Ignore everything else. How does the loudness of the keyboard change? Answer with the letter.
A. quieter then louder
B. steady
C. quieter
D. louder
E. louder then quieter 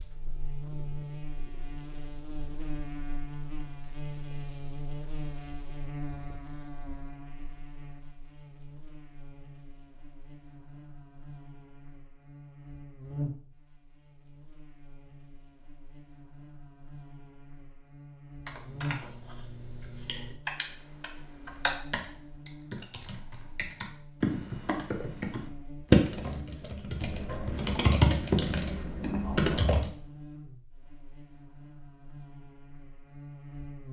D.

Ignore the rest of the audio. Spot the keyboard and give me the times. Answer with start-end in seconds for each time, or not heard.
18.4-29.9.